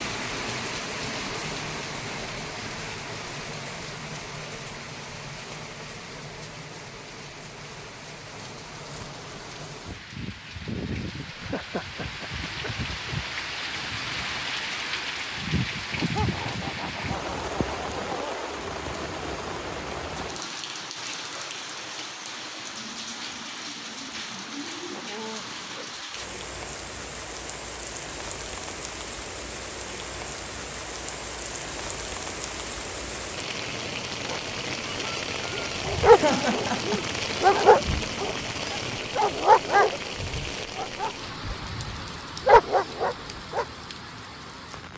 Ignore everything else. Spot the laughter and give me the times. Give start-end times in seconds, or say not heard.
11.2-13.2, 15.9-18.5, 36.1-37.7.